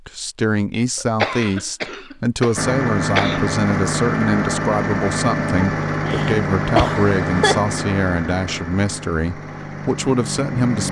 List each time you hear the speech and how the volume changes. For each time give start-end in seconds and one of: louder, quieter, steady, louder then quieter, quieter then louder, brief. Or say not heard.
0.1-10.8 steady.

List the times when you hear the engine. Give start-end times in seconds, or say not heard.
2.5-10.8.